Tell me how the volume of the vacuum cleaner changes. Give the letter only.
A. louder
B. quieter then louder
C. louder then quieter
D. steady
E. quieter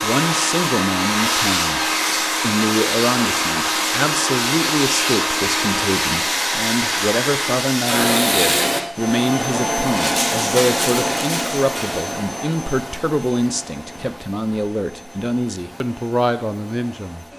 E.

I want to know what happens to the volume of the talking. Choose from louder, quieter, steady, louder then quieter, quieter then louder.
steady.